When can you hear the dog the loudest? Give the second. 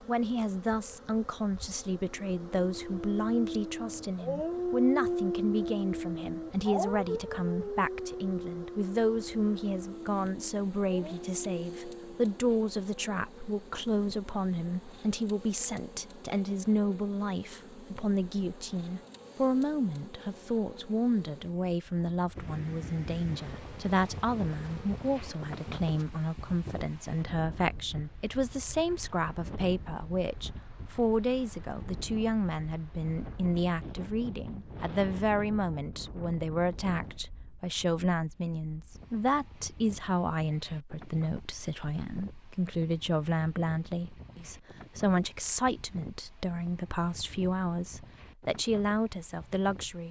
5 s.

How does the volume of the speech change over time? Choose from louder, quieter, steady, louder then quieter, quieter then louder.
steady.